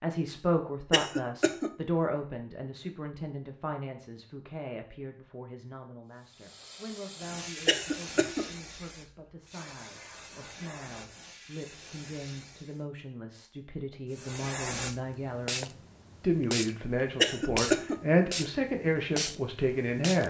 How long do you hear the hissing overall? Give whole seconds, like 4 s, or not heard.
13 s.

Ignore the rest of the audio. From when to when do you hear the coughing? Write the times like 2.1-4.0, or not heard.
0.9-1.7, 7.7-8.4, 17.1-18.0.